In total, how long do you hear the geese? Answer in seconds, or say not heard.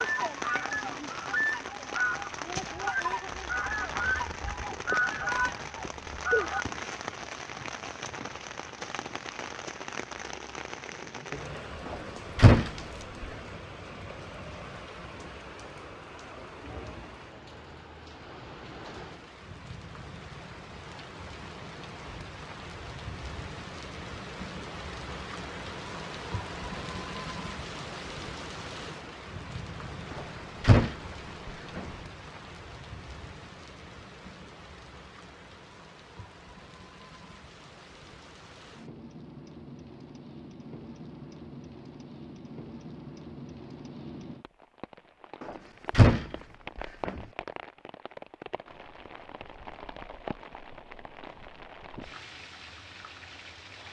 7 s.